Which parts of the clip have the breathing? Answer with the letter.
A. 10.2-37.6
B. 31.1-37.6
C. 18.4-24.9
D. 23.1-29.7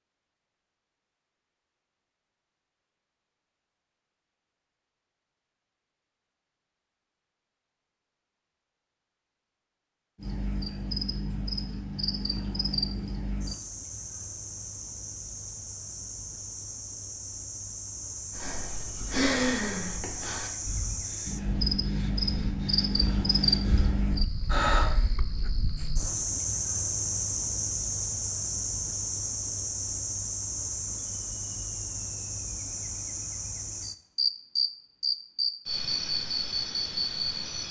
C.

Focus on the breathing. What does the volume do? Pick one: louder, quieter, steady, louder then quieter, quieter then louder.
quieter then louder.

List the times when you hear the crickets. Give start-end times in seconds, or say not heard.
10.2-37.6.